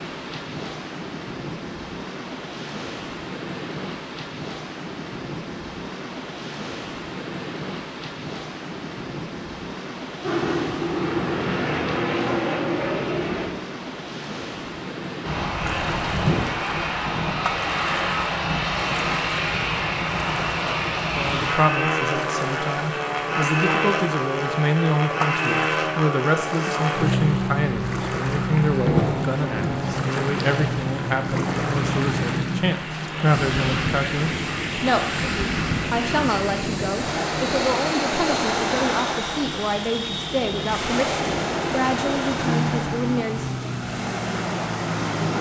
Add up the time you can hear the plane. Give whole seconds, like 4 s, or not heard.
33 s.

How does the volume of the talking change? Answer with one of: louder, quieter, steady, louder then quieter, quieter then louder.
steady.